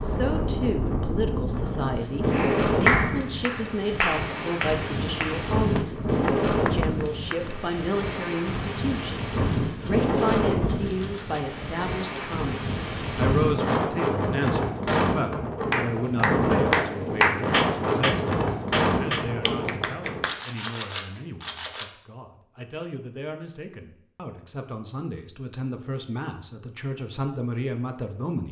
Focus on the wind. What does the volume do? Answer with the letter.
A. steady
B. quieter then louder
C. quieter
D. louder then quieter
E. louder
A.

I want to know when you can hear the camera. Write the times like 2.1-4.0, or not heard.
9.5-11.4, 20.2-21.9.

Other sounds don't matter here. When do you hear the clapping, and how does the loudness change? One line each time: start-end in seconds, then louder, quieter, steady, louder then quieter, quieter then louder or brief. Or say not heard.
2.3-7.5 quieter
15.7-20.8 quieter.